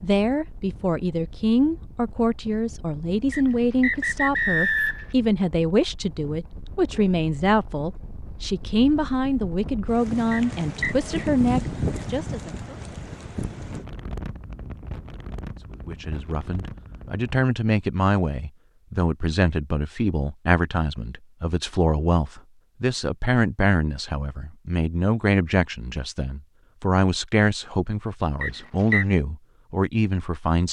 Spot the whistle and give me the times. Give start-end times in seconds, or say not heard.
3.3-5.1, 10.3-10.9, 28.4-29.1.